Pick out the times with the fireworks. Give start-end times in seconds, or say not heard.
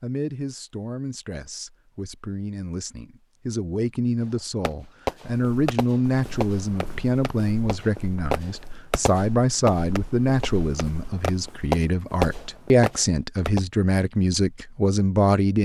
4.7-13.6.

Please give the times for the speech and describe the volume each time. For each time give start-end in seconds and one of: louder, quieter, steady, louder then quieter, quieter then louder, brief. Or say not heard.
0.0-15.5 louder.